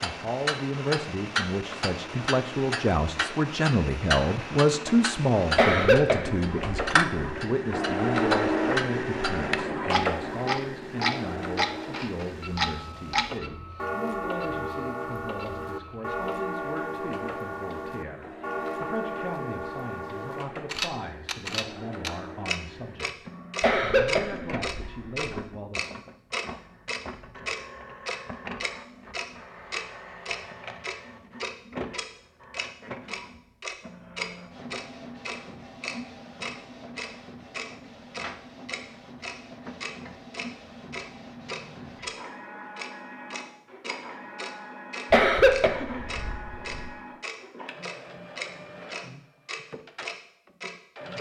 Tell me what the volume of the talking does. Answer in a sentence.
The volume of the talking goes down.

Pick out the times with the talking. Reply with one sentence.
You can hear the talking from 0.0 to 25.9 s.